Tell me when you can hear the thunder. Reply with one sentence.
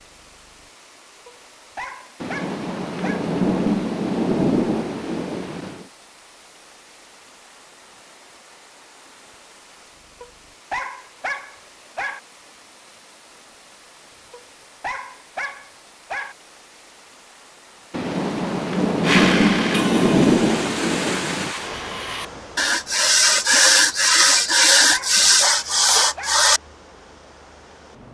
The thunder can be heard from 2.2 to 5.8 s and from 17.9 to 21.6 s.